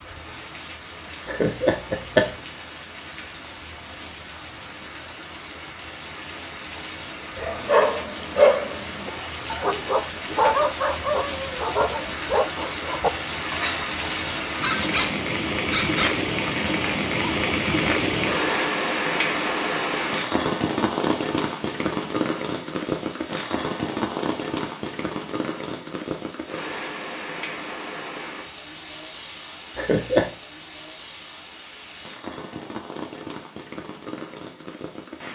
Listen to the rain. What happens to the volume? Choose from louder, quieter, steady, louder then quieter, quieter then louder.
louder then quieter.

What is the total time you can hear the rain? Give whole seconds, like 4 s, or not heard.
35 s.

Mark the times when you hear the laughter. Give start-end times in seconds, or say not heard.
1.2-2.3, 29.8-30.3.